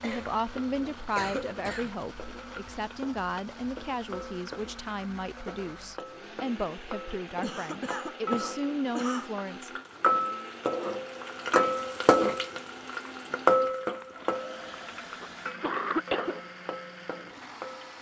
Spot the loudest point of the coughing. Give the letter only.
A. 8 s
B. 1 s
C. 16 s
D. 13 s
C.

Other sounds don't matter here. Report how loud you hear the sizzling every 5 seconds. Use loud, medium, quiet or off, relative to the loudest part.
quiet, quiet, loud, quiet.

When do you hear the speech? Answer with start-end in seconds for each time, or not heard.
0.0-9.7.